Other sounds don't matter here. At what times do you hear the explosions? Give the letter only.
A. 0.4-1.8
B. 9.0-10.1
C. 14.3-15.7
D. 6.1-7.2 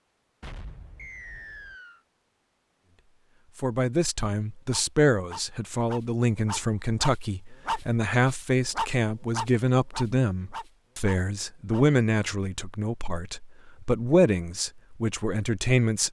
A.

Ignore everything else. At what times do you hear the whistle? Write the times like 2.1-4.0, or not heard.
0.9-2.0.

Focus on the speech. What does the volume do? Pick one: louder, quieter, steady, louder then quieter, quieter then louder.
steady.